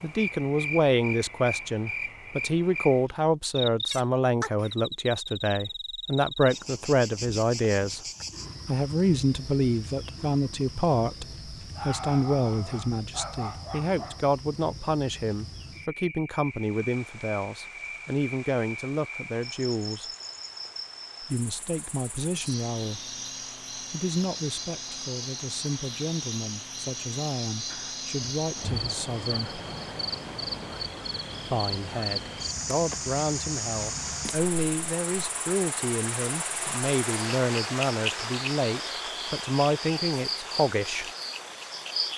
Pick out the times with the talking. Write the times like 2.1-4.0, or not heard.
0.0-8.0, 8.7-20.1, 21.2-23.1, 23.8-29.6, 31.5-41.0.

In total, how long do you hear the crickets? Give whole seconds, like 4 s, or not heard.
42 s.